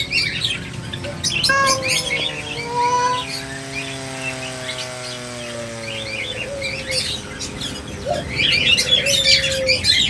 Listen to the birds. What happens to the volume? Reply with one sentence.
The volume of the birds goes down, then up.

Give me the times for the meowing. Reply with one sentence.
The meowing can be heard from 1.4 to 3.2 s.